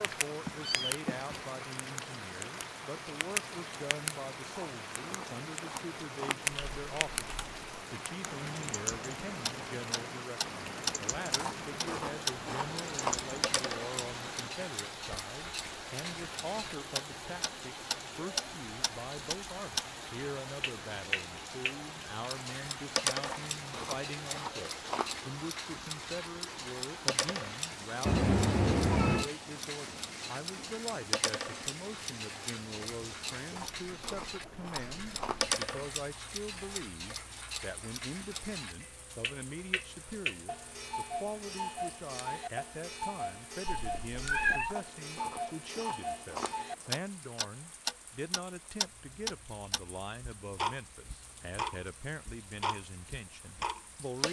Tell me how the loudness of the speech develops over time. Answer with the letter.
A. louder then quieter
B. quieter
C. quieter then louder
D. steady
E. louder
D.